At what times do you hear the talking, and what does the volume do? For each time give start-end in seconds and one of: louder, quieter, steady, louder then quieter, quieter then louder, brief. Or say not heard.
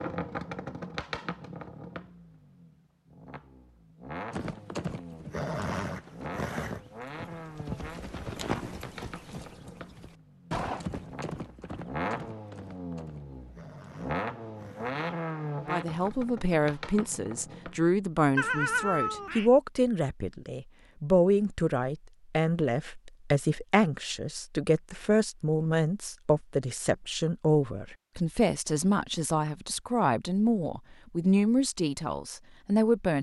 15.6-33.1 steady.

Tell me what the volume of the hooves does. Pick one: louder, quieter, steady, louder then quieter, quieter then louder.
quieter.